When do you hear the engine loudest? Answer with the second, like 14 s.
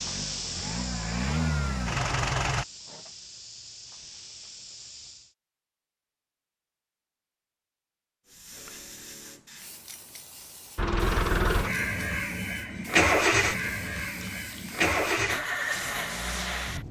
13 s.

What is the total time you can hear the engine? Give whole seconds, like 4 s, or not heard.
9 s.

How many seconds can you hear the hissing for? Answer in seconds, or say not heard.
14 s.